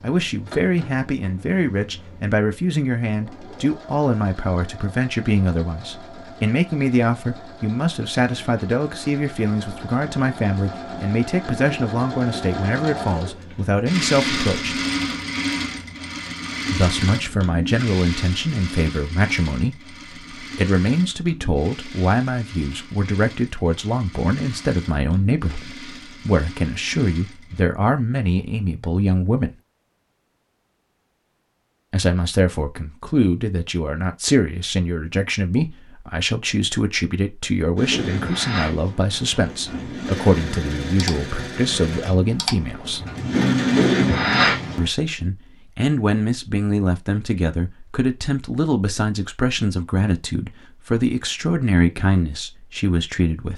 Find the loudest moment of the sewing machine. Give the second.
44 s.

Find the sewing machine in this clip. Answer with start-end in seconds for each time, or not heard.
0.0-27.6, 37.8-44.9.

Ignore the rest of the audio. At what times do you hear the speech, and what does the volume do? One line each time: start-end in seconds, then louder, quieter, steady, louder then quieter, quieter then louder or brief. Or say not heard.
0.0-14.8 steady
16.7-29.5 steady
31.9-43.0 steady
44.8-53.5 steady.